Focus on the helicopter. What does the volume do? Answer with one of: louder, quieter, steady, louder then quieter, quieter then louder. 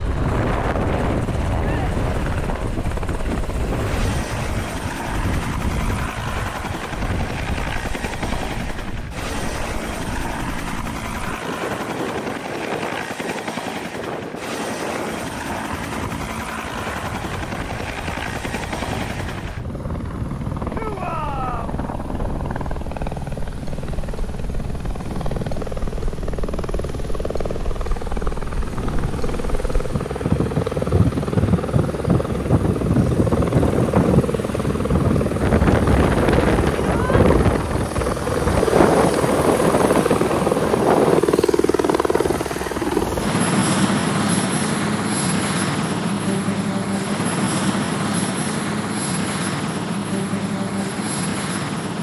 louder.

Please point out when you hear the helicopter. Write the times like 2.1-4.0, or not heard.
0.0-51.9.